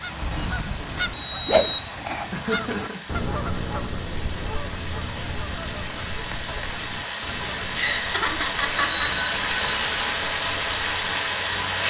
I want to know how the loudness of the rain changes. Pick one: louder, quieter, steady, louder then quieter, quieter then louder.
louder.